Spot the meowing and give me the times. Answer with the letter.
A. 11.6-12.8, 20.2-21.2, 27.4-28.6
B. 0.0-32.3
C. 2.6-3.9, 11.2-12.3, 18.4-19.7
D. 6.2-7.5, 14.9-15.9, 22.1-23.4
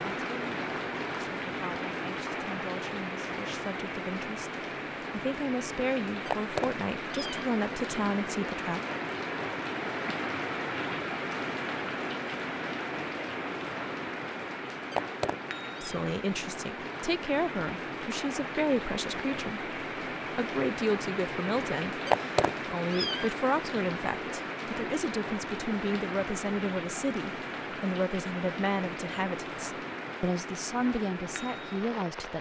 D.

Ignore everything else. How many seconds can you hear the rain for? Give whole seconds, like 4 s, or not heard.
32 s.